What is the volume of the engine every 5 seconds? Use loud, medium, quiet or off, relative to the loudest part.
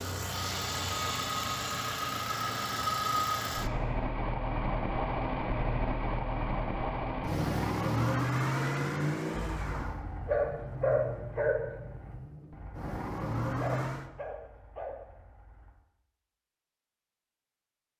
loud, loud, medium, off.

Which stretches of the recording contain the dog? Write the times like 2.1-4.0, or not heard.
9.3-15.8.